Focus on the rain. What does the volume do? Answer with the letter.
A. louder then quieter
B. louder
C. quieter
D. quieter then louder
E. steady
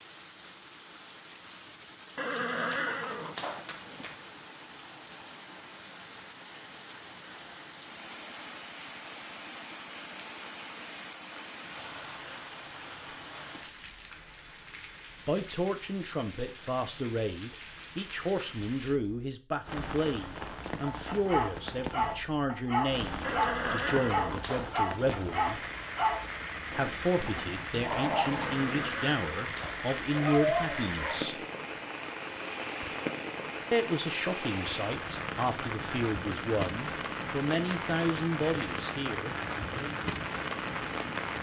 B.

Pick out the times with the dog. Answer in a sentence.
You can hear the dog from 20.9 to 31.2 s.